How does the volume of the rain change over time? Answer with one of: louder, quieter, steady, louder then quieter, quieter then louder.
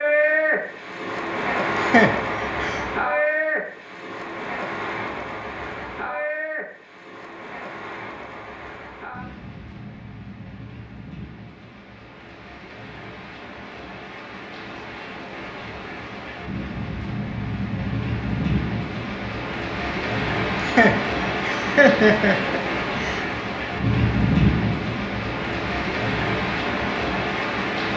quieter then louder.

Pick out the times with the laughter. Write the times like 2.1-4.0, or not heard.
1.8-2.9, 20.6-23.2.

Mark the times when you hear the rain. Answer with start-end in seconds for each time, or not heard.
0.0-27.9.